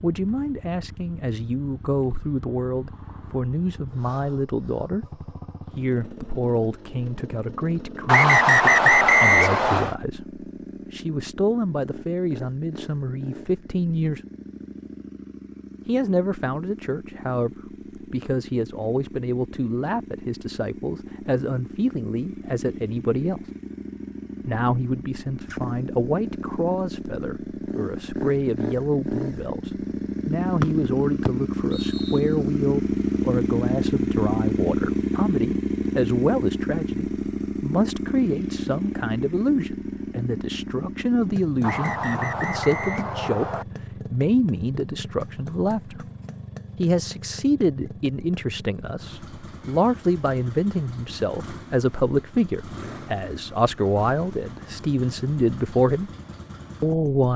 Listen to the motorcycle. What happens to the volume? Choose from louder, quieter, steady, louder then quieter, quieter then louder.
louder then quieter.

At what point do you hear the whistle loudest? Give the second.
9 s.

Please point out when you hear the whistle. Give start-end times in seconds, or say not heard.
8.1-9.9, 30.6-32.2, 41.6-43.6.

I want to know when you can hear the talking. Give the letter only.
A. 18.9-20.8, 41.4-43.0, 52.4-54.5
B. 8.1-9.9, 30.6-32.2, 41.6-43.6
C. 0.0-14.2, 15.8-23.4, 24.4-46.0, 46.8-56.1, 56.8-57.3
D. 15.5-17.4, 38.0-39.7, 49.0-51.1
C.